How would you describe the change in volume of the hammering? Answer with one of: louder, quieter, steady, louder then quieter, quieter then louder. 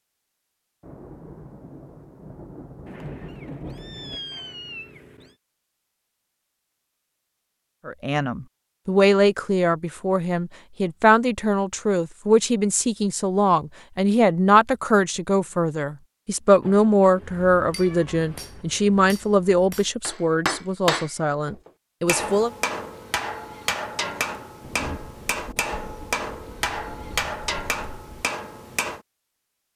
louder.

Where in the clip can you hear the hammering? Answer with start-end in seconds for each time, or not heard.
17.1-29.0.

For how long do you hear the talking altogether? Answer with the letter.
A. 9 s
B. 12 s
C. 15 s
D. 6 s
C.